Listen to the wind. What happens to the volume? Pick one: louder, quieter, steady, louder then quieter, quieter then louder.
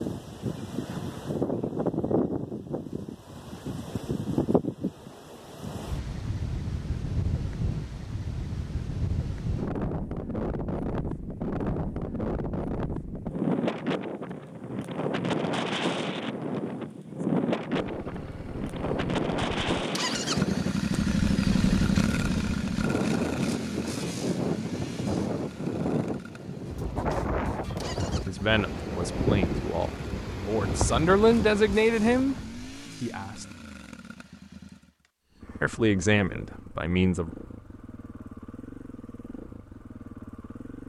steady.